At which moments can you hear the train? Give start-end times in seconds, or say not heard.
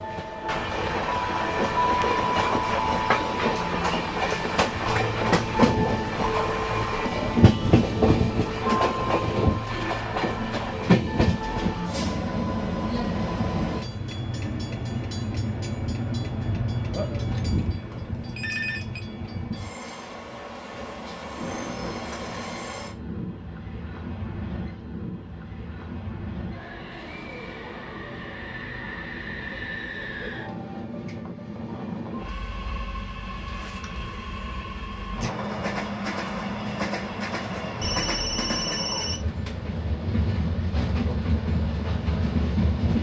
0.0-42.9.